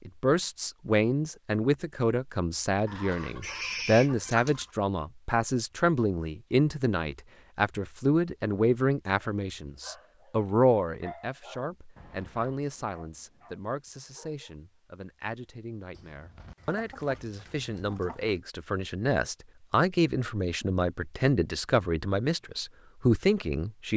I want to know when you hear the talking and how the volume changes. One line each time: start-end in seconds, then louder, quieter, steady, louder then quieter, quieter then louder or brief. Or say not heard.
0.1-23.9 quieter then louder.